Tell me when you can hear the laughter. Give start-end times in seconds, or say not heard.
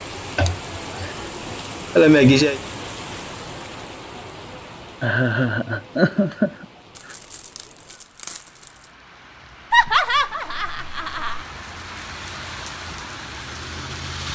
0.3-1.1, 1.9-2.6, 5.0-6.7, 9.7-11.4.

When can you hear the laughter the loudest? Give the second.
2 s.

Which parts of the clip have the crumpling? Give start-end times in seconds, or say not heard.
7.0-8.9.